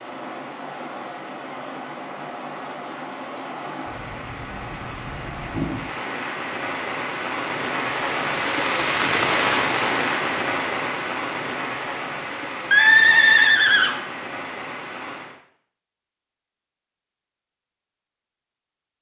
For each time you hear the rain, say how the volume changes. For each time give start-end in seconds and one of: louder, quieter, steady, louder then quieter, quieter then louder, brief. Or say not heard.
0.0-15.4 louder then quieter.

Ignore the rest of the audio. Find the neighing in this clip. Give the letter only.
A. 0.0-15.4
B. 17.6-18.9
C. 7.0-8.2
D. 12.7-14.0
D.